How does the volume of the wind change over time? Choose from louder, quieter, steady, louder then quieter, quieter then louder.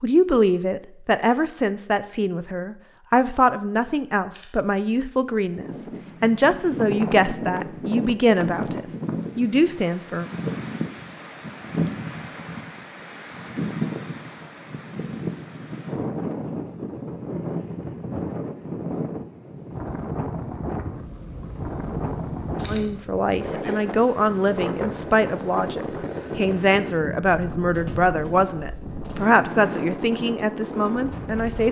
steady.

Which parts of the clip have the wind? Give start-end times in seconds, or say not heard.
5.5-31.6.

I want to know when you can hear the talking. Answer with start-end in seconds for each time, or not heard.
0.0-10.2, 22.6-31.6.